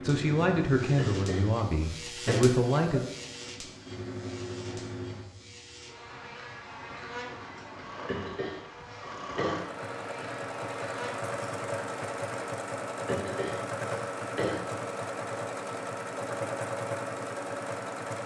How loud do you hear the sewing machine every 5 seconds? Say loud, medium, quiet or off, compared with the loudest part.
medium, medium, loud, loud.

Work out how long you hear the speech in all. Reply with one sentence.
You can hear the speech for 3 seconds altogether.